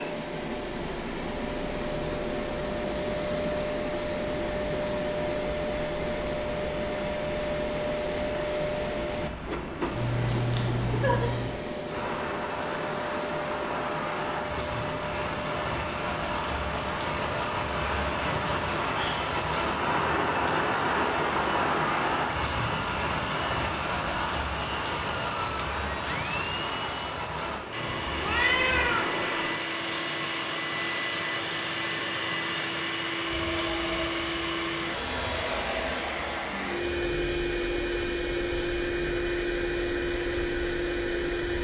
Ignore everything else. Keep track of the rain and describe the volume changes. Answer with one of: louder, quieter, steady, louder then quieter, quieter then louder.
louder then quieter.